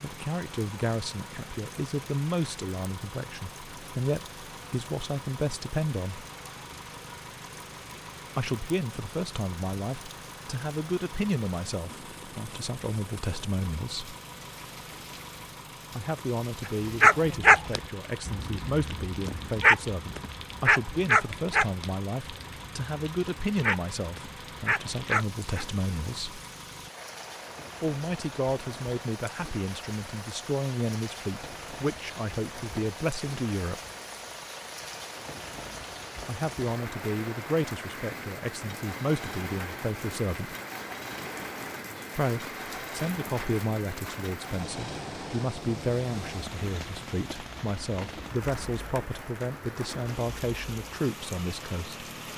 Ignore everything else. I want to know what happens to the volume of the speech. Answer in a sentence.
The volume of the speech stays about the same.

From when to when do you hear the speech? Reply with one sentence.
You can hear the speech from 0.0 to 6.2 s, from 8.3 to 14.2 s, from 15.9 to 26.4 s, from 27.8 to 33.8 s, from 36.2 to 40.5 s and from 42.1 to 52.0 s.